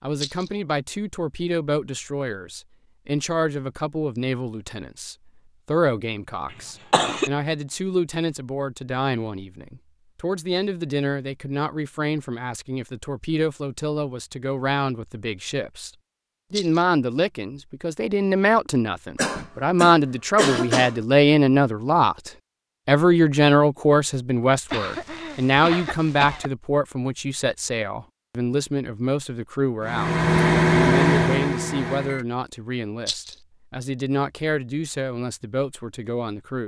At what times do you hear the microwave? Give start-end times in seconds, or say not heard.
29.8-32.2.